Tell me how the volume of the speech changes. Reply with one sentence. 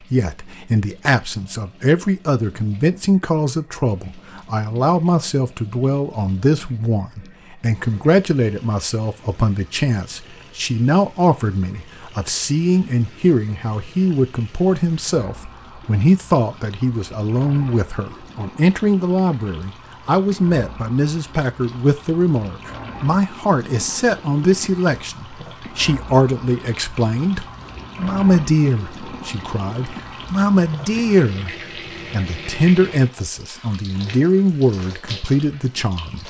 The loudness of the speech stays about the same.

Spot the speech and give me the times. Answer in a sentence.
The speech can be heard from 0.1 to 36.2 s.